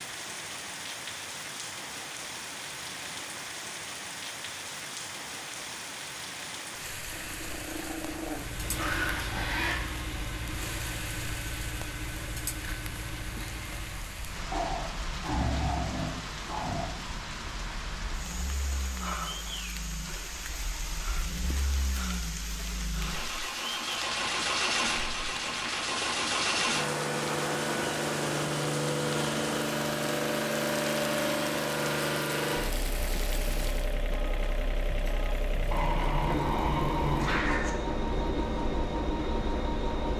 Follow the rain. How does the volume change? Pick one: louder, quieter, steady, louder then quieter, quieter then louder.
steady.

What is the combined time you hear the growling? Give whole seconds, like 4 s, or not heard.
7 s.